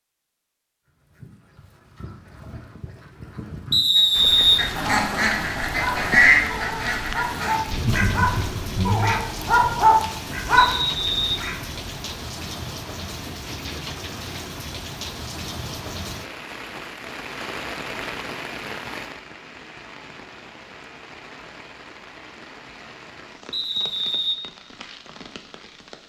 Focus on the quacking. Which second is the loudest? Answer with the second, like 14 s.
6 s.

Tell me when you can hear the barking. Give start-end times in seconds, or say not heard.
5.8-10.8.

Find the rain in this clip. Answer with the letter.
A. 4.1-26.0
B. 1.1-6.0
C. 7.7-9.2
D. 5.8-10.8
A.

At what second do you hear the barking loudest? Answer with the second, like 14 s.
10 s.